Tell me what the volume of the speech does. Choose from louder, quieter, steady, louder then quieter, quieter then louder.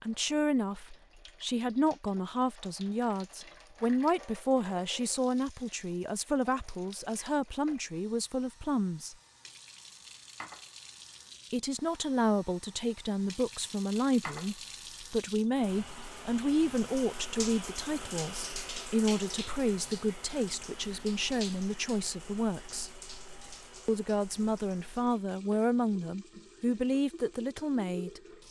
steady.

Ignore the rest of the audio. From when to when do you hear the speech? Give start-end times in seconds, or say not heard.
0.0-9.2, 11.5-22.9, 23.9-28.2.